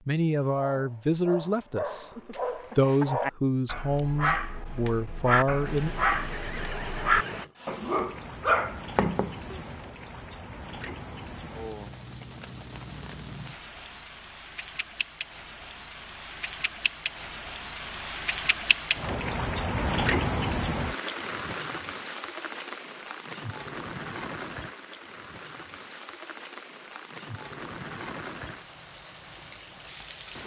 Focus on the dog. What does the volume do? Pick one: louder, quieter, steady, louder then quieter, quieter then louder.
louder.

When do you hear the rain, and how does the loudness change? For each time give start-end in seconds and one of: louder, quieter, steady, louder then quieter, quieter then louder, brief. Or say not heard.
5.7-30.4 louder then quieter.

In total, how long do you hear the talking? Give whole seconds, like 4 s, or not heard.
6 s.